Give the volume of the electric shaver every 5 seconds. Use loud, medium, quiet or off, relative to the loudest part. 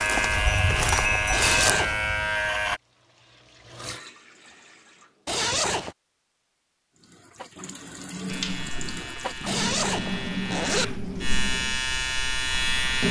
loud, quiet, loud.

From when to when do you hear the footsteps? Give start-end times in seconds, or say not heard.
0.0-2.3.